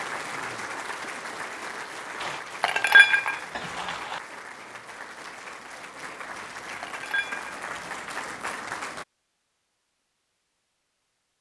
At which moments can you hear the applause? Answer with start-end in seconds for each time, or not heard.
0.0-9.1.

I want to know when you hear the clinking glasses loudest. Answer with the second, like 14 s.
3 s.